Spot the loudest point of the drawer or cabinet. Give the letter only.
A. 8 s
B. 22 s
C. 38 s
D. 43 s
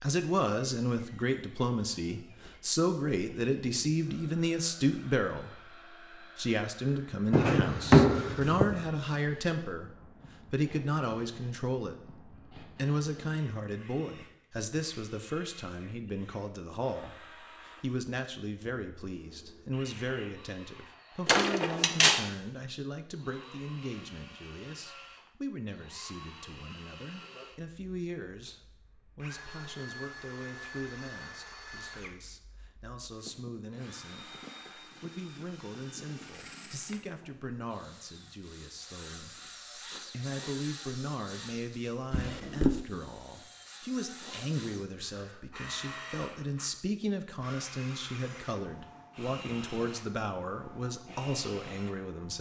A.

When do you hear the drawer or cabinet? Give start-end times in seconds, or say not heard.
7.3-8.8, 21.2-22.2, 42.1-42.8.